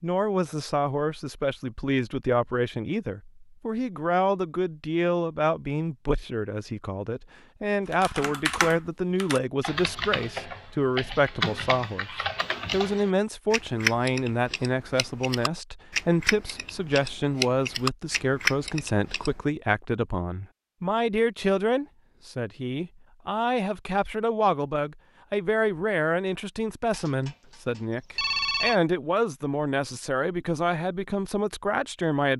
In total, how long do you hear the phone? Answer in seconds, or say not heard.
2 s.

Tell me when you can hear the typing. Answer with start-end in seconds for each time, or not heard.
7.9-19.4.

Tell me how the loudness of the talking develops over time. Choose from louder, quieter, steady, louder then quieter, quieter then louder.
steady.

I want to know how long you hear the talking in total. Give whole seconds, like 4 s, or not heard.
32 s.